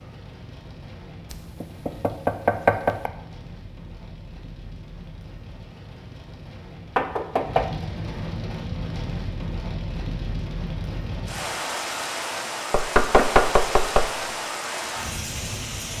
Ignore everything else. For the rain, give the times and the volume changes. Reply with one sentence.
The rain can be heard from 0.0 to 15.9 s, getting louder.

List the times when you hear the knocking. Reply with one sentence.
You can hear the knocking from 1.3 to 3.1 s, from 7.0 to 7.7 s and from 12.7 to 14.3 s.